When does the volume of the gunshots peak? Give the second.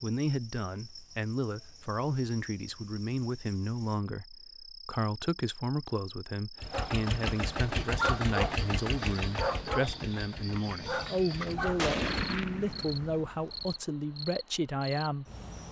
12 s.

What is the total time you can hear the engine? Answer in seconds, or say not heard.
6 s.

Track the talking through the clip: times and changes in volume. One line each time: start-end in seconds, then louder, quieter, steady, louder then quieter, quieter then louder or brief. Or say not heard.
0.0-15.2 steady.